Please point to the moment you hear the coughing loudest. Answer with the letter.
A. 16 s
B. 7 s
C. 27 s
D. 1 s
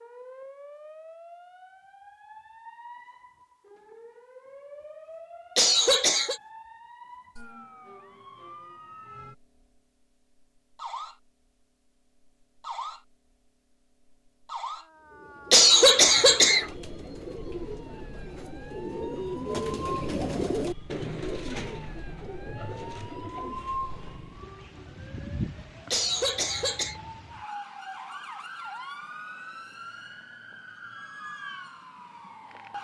A.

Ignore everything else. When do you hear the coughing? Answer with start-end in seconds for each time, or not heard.
5.5-6.4, 15.5-16.7, 25.9-26.9.